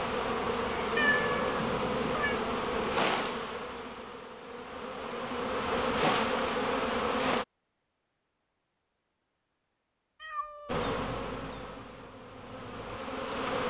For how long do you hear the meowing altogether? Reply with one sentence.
The meowing can be heard for 2 seconds in total.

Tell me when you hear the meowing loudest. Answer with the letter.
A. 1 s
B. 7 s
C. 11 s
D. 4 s
A.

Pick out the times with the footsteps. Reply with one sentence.
The footsteps can't be heard in this clip.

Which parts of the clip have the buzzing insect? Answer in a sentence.
The buzzing insect can be heard from 0.0 to 7.5 s and from 10.7 to 13.6 s.